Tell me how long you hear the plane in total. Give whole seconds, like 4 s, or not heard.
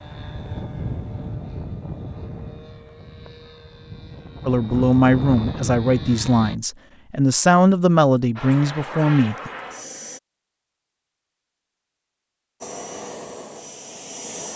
10 s.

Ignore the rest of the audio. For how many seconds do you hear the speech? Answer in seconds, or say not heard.
5 s.